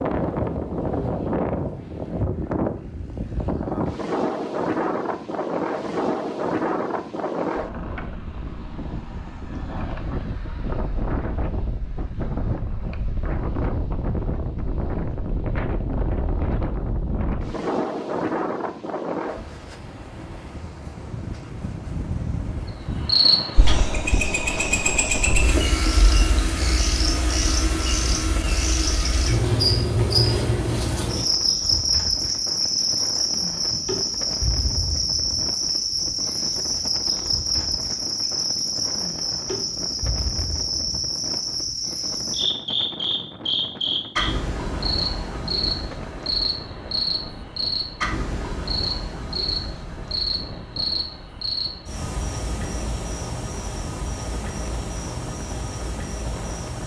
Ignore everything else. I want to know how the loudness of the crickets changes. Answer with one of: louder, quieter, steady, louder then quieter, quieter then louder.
quieter.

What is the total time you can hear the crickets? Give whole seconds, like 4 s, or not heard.
34 s.